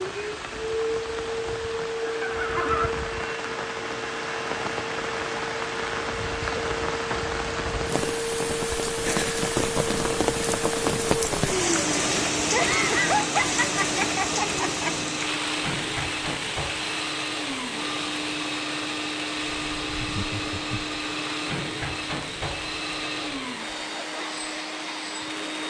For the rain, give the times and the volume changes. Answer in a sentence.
You can hear the rain from 0.0 to 25.6 s, getting louder then quieter.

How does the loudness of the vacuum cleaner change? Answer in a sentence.
The volume of the vacuum cleaner stays about the same.